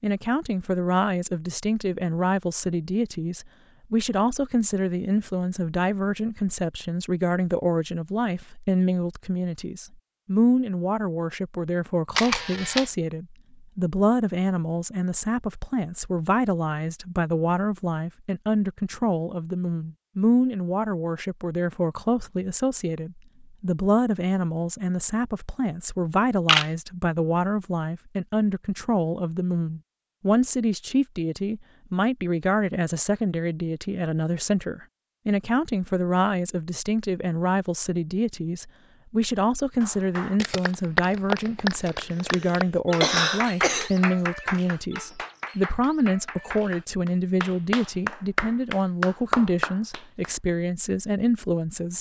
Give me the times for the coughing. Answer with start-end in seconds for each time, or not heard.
41.9-43.9.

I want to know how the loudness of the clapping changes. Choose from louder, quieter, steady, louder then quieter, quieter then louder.
quieter then louder.